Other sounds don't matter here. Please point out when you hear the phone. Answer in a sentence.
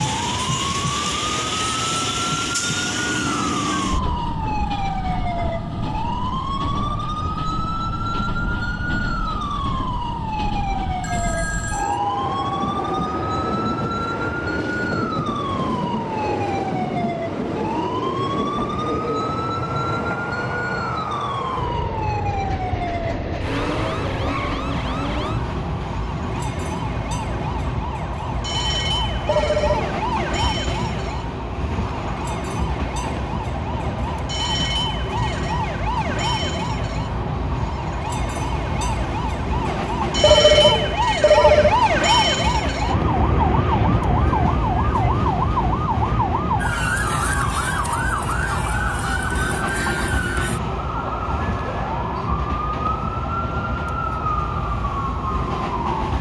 The phone can be heard from 11.0 to 12.0 s, from 29.2 to 29.9 s and from 40.2 to 41.8 s.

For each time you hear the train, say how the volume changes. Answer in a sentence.
You can hear the train from 0.0 to 56.1 s, at a steady volume.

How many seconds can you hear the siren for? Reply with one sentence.
You can hear the siren for 56 seconds altogether.